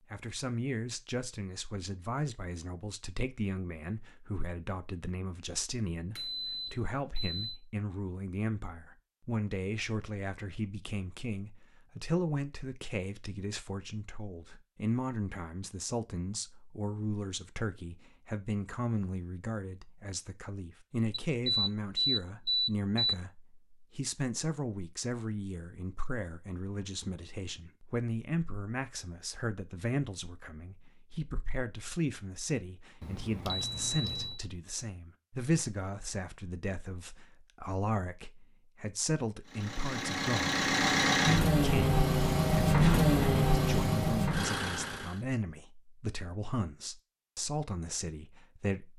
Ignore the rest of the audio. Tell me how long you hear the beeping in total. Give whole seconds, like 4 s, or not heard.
5 s.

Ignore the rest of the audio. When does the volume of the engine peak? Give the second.
43 s.